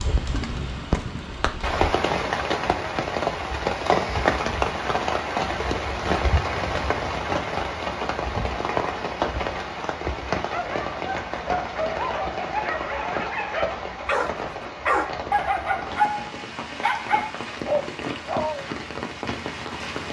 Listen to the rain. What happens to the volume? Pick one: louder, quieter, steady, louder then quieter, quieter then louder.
quieter.